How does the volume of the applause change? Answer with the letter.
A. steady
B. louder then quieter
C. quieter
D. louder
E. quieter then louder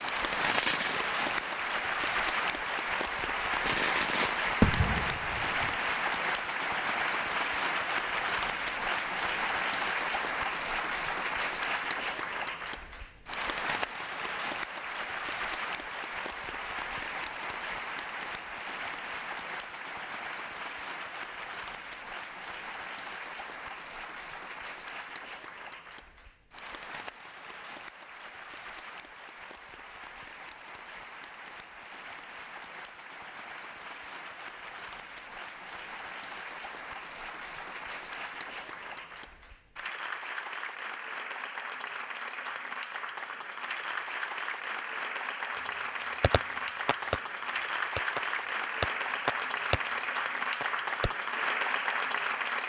E.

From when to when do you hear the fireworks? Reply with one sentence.
You can hear the fireworks from 0.0 to 1.7 s, from 3.6 to 5.8 s and from 45.5 to 51.1 s.